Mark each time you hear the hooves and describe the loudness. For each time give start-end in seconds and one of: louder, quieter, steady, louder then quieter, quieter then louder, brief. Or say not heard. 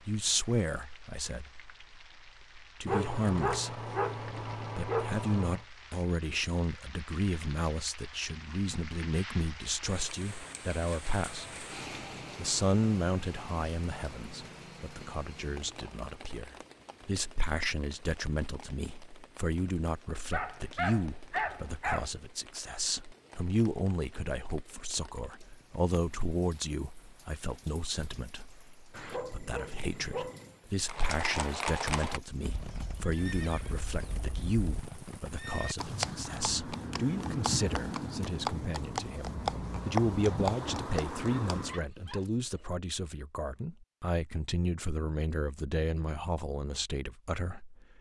30.9-41.8 quieter then louder.